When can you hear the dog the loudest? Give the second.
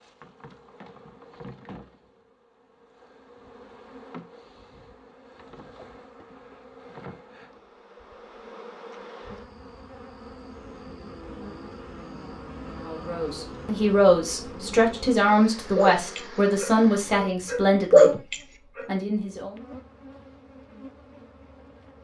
18 s.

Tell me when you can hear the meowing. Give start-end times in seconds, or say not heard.
not heard.